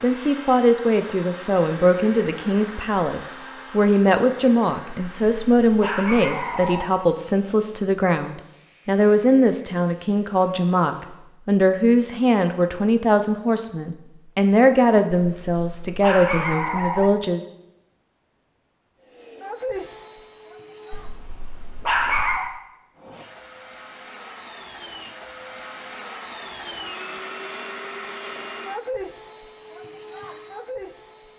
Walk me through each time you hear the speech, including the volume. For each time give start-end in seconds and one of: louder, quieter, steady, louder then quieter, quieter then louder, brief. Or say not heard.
0.0-17.4 steady.